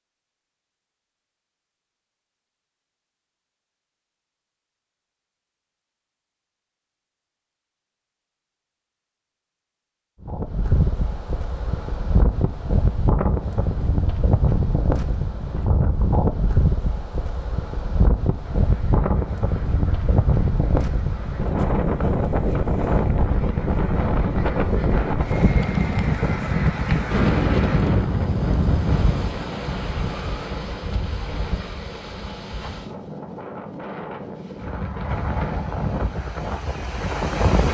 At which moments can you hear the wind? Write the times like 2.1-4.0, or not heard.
10.2-37.6.